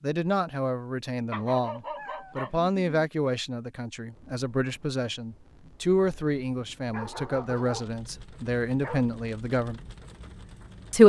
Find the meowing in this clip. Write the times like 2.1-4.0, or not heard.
1.9-2.4.